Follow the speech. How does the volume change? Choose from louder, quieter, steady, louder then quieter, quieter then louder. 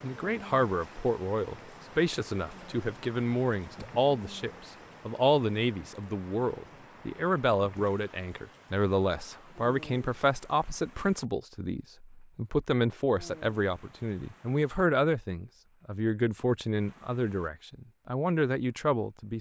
steady.